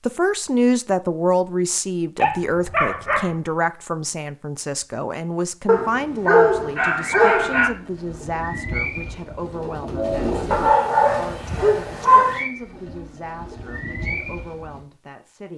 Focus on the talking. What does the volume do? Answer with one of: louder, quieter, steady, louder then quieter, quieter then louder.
quieter.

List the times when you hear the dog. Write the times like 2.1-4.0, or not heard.
2.1-3.4, 5.7-7.7, 10.5-12.4.